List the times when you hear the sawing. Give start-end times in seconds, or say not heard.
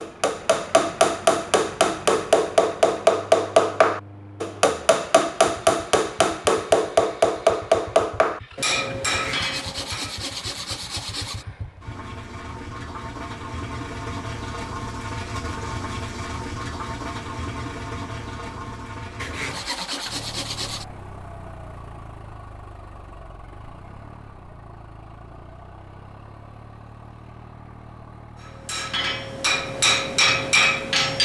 9.1-11.4, 19.1-20.9.